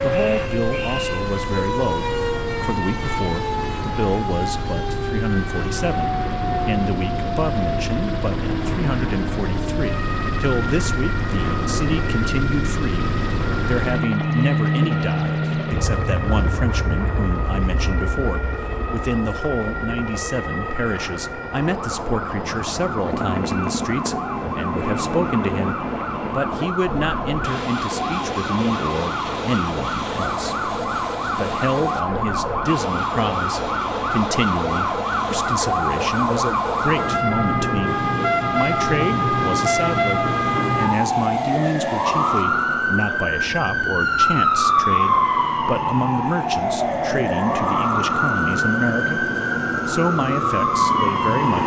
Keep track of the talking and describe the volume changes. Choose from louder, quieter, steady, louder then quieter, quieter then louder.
steady.